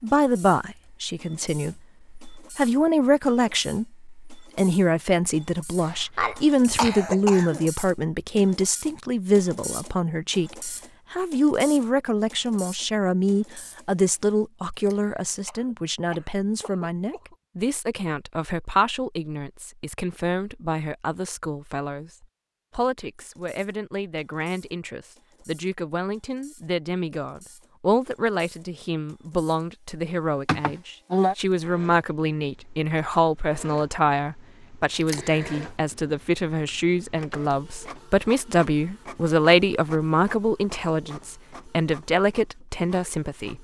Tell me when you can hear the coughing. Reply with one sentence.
You can hear the coughing from 5.8 to 7.7 s, from 15.4 to 17.4 s and from 30.4 to 31.4 s.